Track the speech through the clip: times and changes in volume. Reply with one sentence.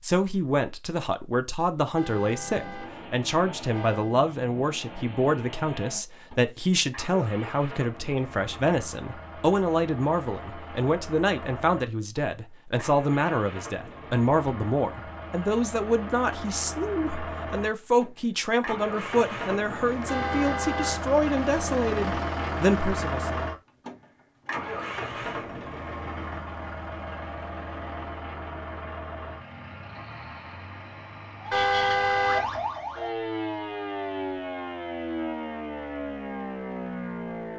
You can hear the speech from 0.0 to 23.4 s, at a steady volume.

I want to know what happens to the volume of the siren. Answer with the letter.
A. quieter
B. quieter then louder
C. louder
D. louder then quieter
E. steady
E.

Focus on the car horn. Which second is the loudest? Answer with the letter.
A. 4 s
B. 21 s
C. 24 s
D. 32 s
D.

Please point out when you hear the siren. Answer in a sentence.
The siren can be heard from 31.4 to 37.5 s.